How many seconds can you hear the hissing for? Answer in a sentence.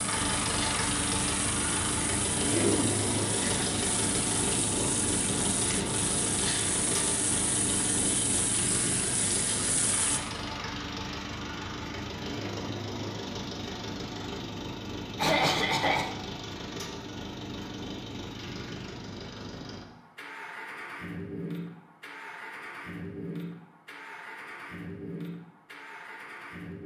You can hear the hissing for 10 seconds altogether.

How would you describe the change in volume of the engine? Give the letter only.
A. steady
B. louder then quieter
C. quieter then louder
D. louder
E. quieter
E.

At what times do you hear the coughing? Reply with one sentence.
The coughing can be heard from 2.5 to 3.6 s and from 15.2 to 16.1 s.